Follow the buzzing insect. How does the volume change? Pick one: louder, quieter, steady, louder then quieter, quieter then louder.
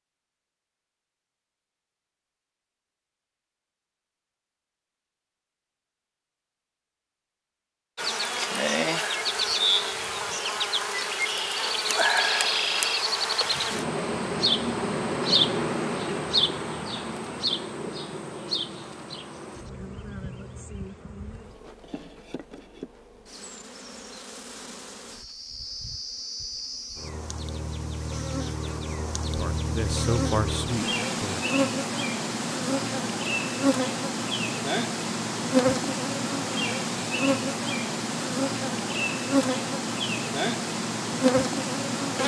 quieter then louder.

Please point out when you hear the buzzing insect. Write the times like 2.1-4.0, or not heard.
8.0-42.2.